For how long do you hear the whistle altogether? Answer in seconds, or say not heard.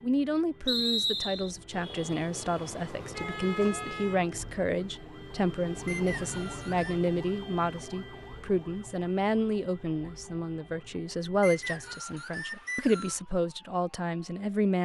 4 s.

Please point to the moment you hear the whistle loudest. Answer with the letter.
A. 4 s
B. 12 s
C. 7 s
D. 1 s
D.